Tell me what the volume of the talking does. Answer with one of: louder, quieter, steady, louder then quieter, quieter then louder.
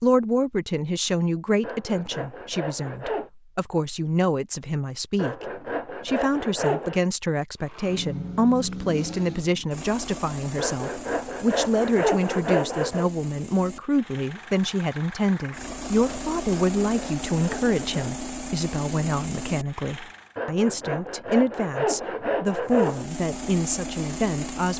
steady.